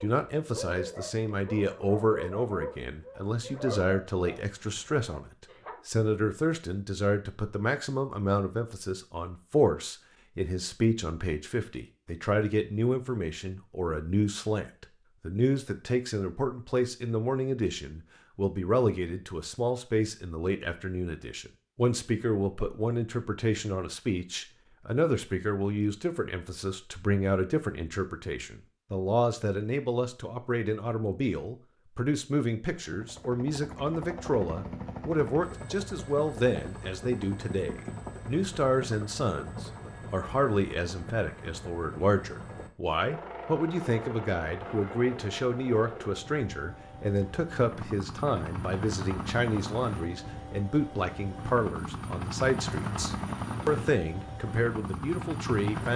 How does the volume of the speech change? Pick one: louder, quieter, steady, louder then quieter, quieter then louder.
steady.